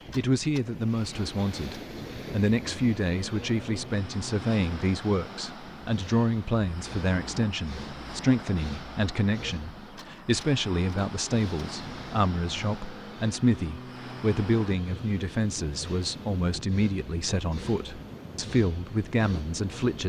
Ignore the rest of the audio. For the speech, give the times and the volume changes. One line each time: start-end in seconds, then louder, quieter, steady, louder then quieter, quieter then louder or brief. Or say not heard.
0.1-20.0 steady.